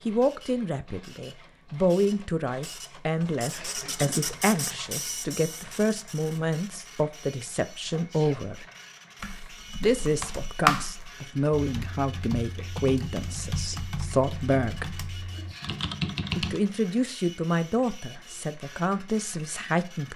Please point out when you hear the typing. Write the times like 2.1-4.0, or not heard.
9.2-16.6.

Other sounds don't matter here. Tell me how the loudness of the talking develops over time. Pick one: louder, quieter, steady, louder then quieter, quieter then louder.
steady.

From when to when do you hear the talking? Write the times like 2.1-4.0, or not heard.
0.1-8.7, 9.8-14.9, 16.4-20.1.